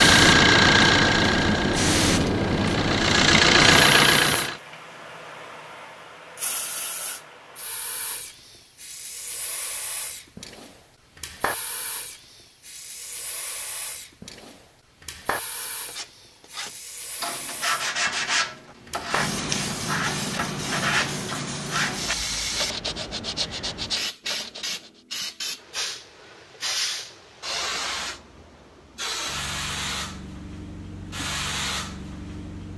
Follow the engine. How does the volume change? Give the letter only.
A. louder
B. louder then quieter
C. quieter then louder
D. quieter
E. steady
C.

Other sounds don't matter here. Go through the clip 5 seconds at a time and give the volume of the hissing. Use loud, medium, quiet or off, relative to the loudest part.
loud, quiet, quiet, medium, medium, medium, medium.